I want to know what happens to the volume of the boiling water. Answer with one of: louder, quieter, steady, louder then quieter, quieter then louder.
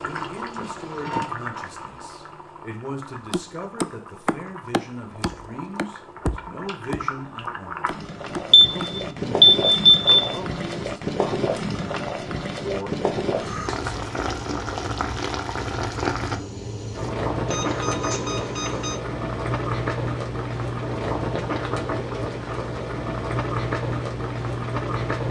louder.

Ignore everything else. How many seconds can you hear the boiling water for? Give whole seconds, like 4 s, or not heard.
25 s.